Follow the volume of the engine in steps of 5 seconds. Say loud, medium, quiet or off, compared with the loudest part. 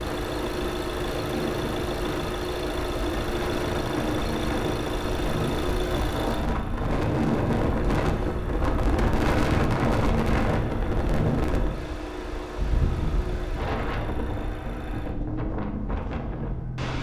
loud, loud, medium, medium.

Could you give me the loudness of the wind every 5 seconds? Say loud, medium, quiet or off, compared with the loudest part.
medium, loud, loud, medium.